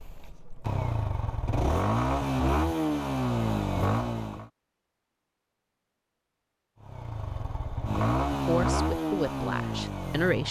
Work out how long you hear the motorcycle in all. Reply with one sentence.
The motorcycle can be heard for 8 seconds in total.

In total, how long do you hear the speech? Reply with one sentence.
The speech can be heard for 2 seconds in total.